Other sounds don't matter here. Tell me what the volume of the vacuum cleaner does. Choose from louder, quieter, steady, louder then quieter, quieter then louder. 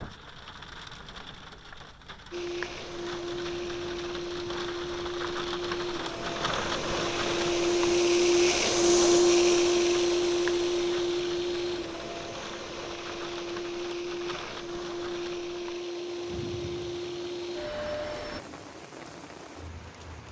louder then quieter.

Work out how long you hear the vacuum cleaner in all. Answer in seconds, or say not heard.
16 s.